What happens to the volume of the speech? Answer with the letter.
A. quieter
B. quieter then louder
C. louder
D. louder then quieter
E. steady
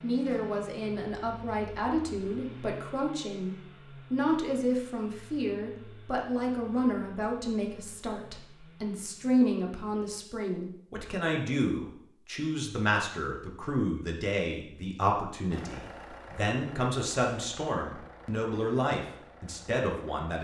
E.